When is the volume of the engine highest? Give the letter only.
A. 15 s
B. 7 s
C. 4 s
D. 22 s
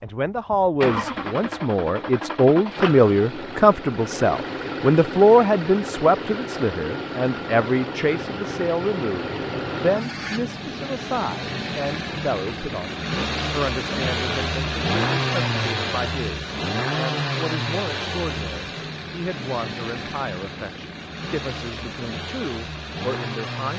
A.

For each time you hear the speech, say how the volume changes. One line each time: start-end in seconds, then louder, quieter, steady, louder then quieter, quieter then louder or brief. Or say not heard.
0.0-23.7 quieter.